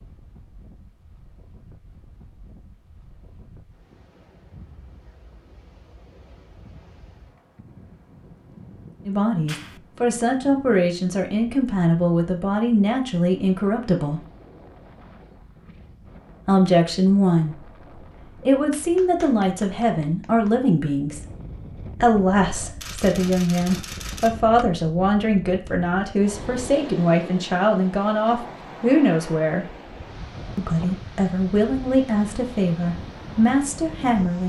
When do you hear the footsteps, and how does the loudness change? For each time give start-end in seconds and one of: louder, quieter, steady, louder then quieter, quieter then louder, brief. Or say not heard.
not heard.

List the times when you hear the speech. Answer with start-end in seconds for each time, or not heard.
9.1-14.2, 16.4-17.6, 18.4-21.2, 22.0-29.6, 30.6-34.4.